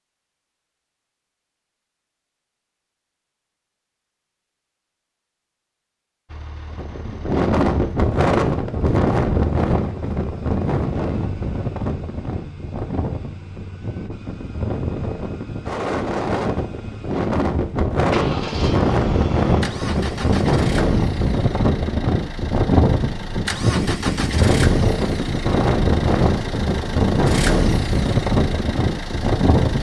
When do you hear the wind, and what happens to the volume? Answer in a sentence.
The wind can be heard from 6.7 to 29.7 s, getting quieter then louder.